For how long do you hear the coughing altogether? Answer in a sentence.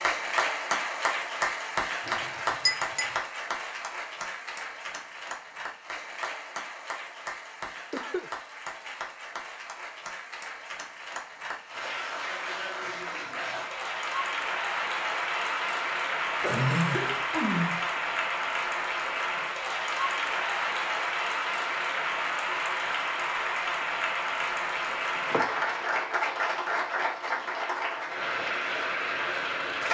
You can hear the coughing for 2 seconds altogether.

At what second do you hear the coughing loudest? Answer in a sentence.
The loudest moment of the coughing is at 17 seconds.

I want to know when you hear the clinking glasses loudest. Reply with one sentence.
The loudest moment of the clinking glasses is at 3 seconds.